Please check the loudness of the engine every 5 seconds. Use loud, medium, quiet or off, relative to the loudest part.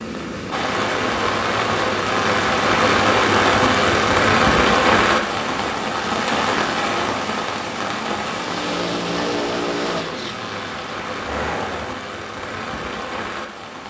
off, loud, medium.